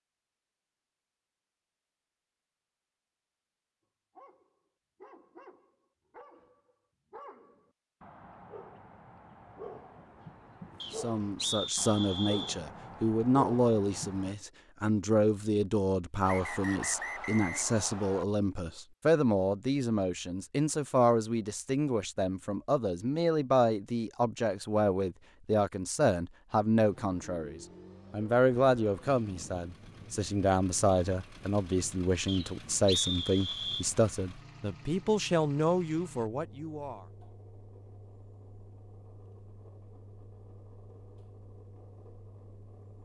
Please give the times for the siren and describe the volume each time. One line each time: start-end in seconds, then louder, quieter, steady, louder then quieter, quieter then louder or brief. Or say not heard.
not heard.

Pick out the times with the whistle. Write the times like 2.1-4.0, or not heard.
10.8-12.6, 16.2-18.2, 32.2-33.9.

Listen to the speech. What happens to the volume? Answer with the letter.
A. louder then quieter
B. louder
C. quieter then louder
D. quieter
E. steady
E.